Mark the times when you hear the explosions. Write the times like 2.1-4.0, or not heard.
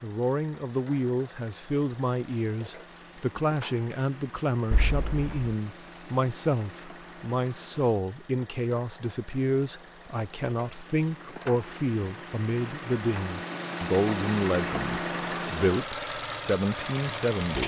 4.7-5.5.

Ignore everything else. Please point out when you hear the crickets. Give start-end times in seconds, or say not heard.
not heard.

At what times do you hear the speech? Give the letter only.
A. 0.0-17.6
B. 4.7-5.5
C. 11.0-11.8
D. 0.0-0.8
A.